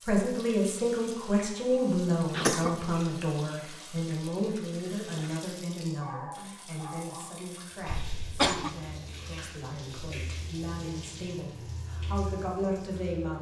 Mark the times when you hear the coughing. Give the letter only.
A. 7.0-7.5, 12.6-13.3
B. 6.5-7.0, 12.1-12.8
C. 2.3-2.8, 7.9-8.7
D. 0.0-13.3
C.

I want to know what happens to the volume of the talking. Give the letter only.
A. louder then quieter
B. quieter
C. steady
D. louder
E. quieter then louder
E.